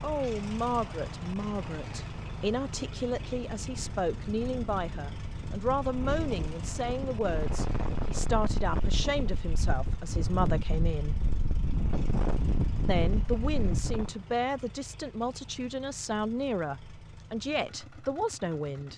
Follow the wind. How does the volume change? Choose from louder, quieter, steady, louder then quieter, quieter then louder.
louder.